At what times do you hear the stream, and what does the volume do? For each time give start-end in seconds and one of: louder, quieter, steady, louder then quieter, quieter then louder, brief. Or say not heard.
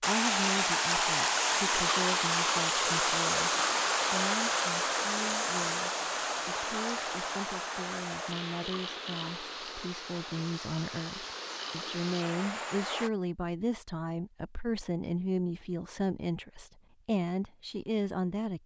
0.0-13.1 quieter.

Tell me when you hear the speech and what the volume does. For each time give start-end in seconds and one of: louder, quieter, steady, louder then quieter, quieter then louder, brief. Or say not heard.
0.1-18.6 louder.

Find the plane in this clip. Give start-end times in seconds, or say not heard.
not heard.